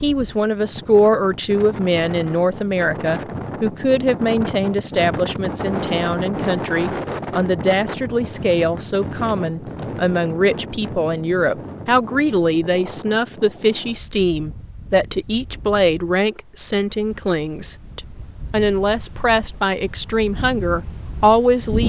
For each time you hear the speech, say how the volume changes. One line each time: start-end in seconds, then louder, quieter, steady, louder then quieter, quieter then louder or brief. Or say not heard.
0.0-21.8 steady.